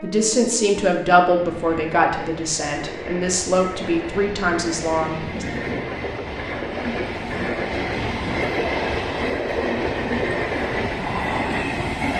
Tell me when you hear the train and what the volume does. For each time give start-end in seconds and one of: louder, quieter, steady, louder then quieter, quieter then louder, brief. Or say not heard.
0.0-12.1 louder.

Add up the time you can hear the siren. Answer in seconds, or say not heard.
not heard.